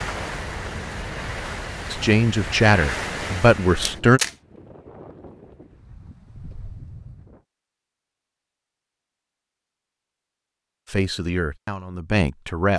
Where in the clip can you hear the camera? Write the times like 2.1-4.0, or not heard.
3.8-4.3.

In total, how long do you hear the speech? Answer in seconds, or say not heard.
4 s.